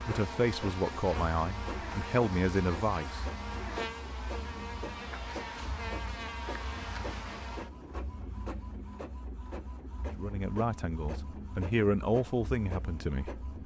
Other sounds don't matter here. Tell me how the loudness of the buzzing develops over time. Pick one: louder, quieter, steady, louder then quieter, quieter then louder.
steady.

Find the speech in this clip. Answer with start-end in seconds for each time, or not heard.
0.0-3.2, 10.2-13.4.